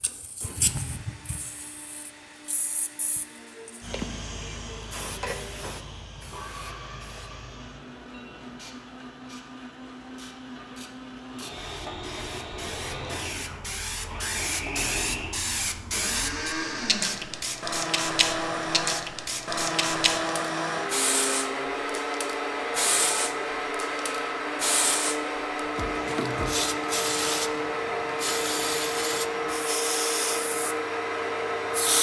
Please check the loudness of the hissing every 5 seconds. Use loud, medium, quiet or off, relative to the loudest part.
medium, quiet, medium, loud, loud, loud, loud.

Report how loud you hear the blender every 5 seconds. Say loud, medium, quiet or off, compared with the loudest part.
quiet, quiet, medium, loud, loud, loud, loud.